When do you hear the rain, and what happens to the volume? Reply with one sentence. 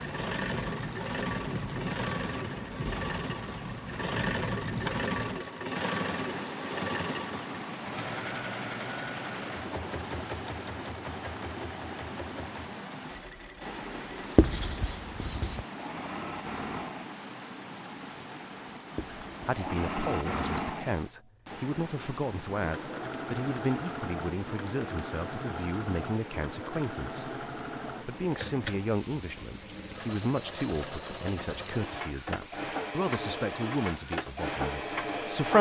The rain can be heard from 0.0 to 35.4 s, getting quieter.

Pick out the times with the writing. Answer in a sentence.
You can hear the writing from 14.3 to 15.7 s and from 18.9 to 20.2 s.